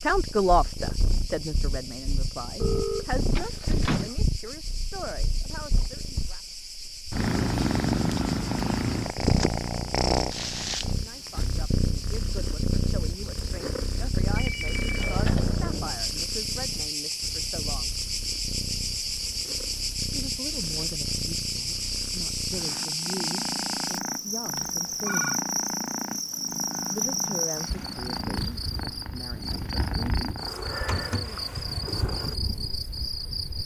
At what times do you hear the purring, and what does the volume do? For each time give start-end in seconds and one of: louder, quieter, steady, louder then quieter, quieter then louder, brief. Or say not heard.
0.0-33.6 louder then quieter.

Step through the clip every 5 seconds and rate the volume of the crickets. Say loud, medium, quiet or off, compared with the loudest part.
medium, medium, medium, loud, loud, loud, loud.